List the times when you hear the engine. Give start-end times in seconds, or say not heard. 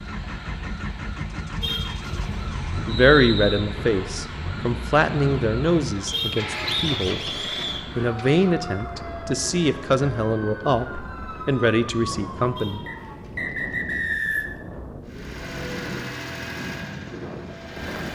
0.0-8.4, 15.1-18.0.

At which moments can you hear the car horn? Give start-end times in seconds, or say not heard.
1.6-2.3, 6.1-7.0, 12.6-13.3.